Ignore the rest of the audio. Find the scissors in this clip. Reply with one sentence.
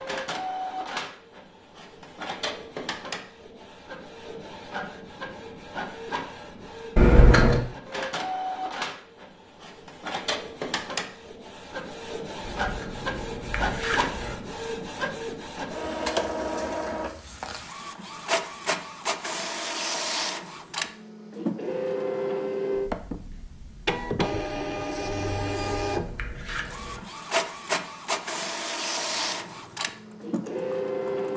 You can hear the scissors from 7.0 to 7.7 s, from 12.4 to 14.3 s and from 25.1 to 27.0 s.